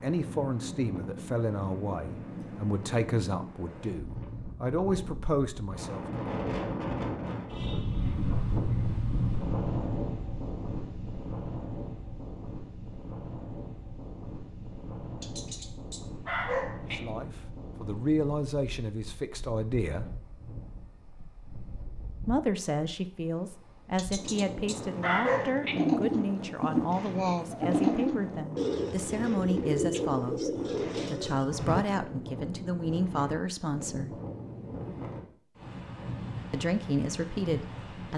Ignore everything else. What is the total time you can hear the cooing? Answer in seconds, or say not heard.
6 s.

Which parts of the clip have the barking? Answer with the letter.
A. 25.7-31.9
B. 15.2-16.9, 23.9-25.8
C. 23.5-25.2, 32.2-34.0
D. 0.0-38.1
B.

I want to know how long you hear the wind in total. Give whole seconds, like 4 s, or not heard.
38 s.